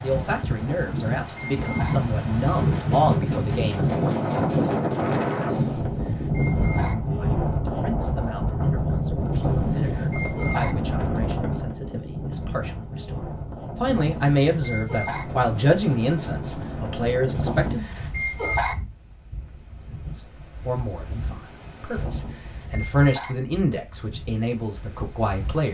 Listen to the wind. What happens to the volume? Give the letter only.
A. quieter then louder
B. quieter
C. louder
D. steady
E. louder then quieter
B.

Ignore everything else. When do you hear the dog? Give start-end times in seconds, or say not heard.
0.6-2.0, 5.5-7.0, 9.3-10.8, 13.8-15.2, 17.4-18.8, 21.9-23.4.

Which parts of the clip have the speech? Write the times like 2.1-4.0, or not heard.
0.0-4.1, 7.2-18.0, 20.1-25.7.